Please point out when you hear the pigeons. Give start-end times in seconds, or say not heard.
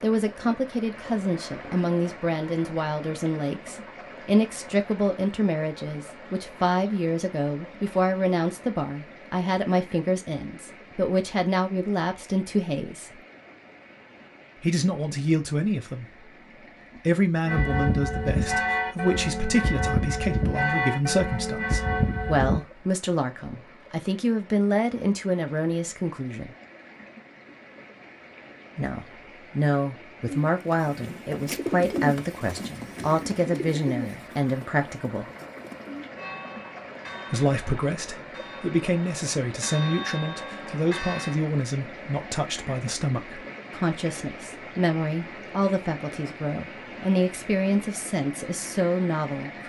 30.2-36.1.